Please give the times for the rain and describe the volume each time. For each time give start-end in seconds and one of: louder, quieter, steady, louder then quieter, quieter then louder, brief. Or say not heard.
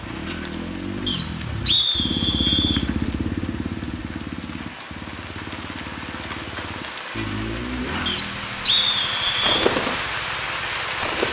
0.0-11.2 louder.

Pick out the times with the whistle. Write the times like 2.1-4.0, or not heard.
1.1-2.9, 8.1-9.7.